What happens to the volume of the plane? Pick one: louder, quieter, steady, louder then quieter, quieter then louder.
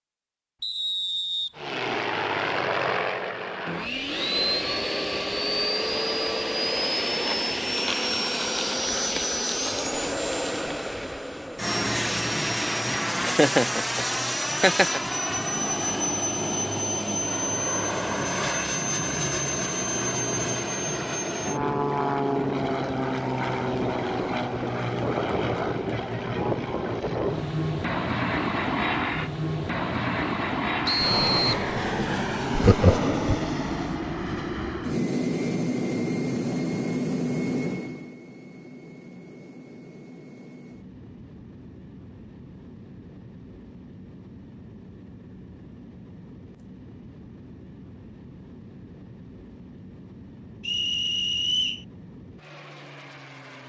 quieter.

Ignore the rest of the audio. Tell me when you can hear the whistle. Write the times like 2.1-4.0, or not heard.
0.6-1.5, 30.9-31.6, 50.6-51.8.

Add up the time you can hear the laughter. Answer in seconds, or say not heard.
3 s.